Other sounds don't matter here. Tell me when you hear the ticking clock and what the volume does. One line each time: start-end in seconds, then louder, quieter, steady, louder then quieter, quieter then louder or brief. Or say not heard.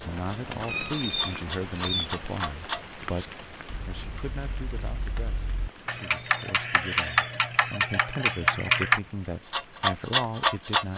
0.2-10.9 louder.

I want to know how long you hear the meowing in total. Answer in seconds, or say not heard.
4 s.